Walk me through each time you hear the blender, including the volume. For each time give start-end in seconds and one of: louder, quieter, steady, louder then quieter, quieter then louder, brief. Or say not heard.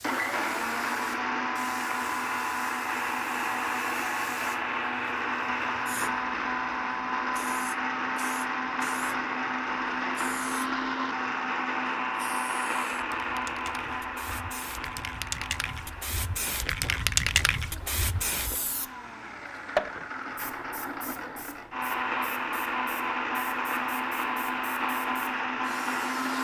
0.0-26.3 quieter then louder.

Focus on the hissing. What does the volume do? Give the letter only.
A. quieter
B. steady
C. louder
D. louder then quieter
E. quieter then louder
D.